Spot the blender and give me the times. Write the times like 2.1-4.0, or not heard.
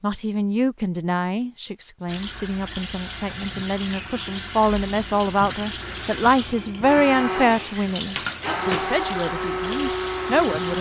6.8-10.7.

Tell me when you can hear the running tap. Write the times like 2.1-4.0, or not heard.
2.0-10.7.